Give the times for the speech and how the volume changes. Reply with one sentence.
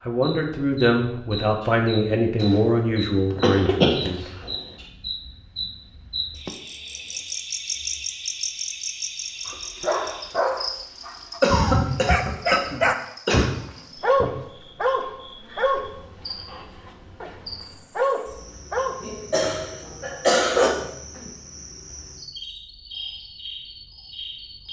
You can hear the speech from 0.0 to 4.2 s, at a steady volume.